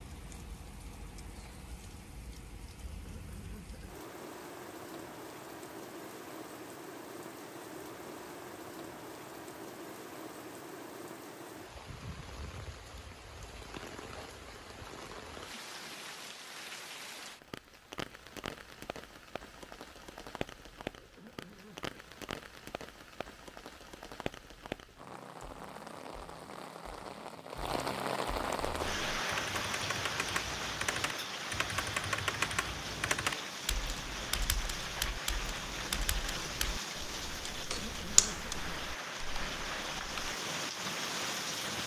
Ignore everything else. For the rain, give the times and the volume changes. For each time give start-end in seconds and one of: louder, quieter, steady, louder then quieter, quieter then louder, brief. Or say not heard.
0.0-41.8 louder.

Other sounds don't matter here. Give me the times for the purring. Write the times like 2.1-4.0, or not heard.
not heard.